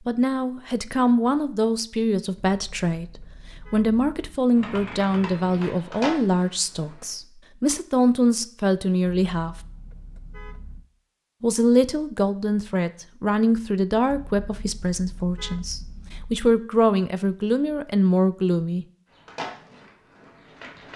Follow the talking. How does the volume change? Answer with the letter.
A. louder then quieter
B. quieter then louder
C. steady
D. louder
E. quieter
C.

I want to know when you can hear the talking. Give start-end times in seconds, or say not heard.
0.1-9.6, 11.4-18.9.